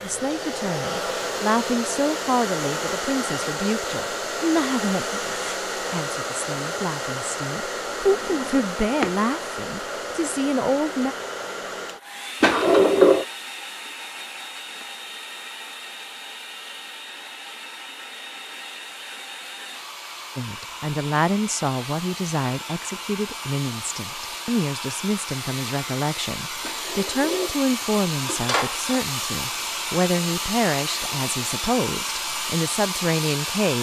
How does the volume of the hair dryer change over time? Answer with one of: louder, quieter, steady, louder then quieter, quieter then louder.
quieter then louder.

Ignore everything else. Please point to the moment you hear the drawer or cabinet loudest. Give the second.
13 s.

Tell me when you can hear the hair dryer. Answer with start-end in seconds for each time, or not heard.
0.0-33.7.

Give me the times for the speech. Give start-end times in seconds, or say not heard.
0.0-11.2, 20.4-33.7.